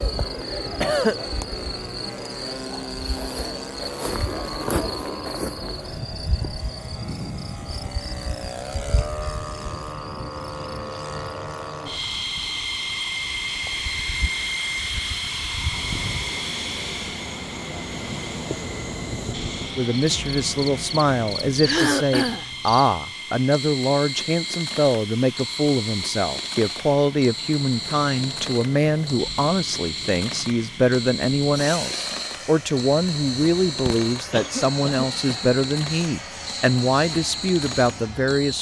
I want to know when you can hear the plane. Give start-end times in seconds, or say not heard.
0.0-38.5.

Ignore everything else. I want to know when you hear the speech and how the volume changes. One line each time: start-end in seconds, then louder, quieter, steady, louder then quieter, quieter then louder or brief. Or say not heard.
19.8-38.5 steady.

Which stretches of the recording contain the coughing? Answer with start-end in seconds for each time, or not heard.
0.7-1.2, 21.6-22.4, 33.9-35.5.